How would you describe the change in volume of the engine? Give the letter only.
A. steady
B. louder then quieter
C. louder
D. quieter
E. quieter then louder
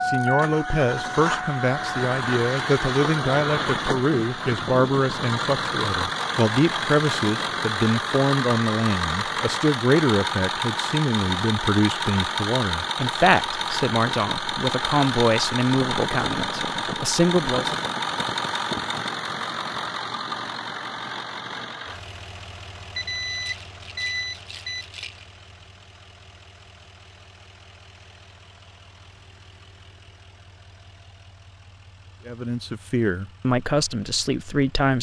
D.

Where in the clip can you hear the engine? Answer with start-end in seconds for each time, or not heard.
0.0-34.9.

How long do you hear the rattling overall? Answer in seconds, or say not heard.
2 s.